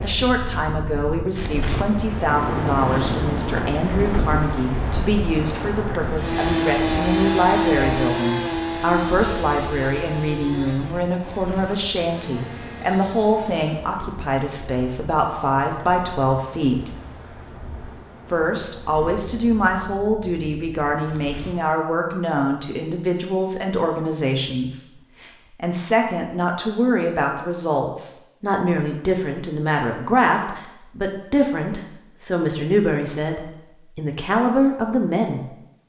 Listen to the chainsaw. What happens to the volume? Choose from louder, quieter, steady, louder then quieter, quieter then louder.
quieter.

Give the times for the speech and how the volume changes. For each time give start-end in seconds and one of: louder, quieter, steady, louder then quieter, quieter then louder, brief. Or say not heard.
0.0-16.9 steady
18.2-35.5 steady.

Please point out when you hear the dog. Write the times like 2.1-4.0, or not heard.
not heard.